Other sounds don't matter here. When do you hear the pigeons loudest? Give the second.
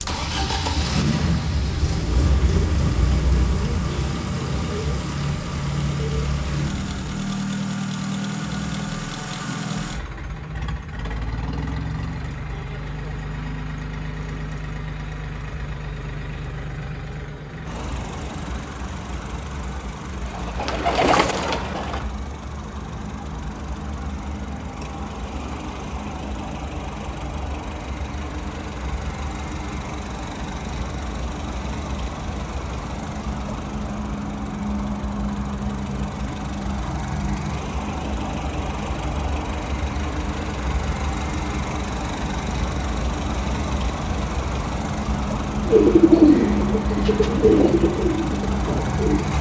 46 s.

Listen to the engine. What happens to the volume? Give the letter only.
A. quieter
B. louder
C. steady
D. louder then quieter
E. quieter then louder
E.